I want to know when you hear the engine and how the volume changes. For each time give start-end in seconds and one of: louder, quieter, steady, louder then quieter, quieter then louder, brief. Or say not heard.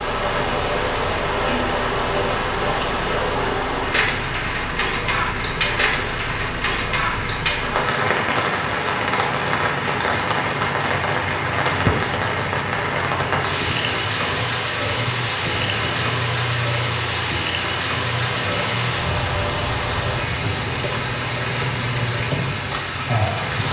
0.0-23.6 steady.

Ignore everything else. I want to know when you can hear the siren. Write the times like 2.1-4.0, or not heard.
not heard.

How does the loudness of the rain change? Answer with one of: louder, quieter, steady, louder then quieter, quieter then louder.
steady.